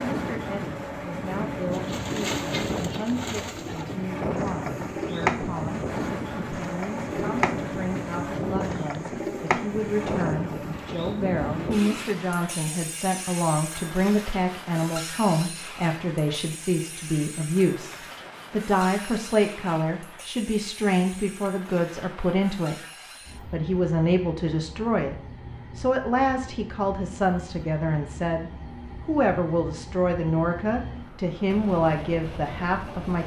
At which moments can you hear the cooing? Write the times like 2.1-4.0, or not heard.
1.6-12.2.